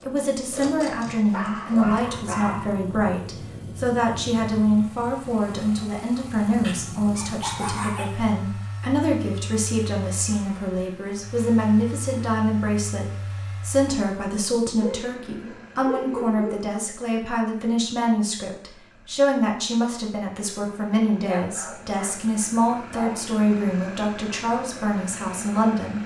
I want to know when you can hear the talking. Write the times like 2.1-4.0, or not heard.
0.0-26.0.